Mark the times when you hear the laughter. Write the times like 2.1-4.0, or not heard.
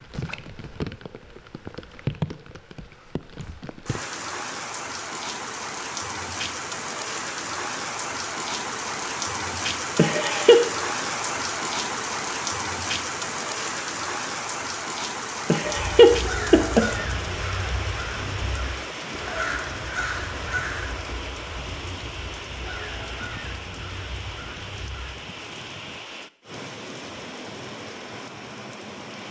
9.9-10.6, 15.5-16.9.